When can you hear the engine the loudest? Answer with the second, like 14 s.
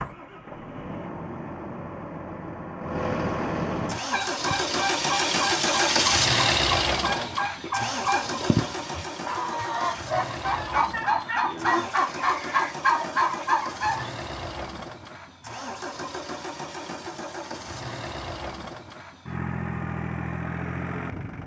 6 s.